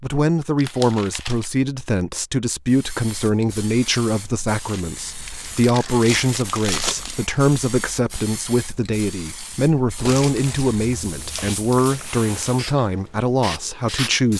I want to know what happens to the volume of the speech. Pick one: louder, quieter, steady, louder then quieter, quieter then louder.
steady.